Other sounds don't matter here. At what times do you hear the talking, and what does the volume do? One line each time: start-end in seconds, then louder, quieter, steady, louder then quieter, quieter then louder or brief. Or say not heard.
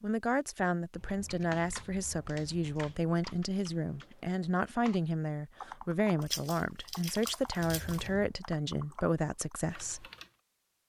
0.0-10.1 steady.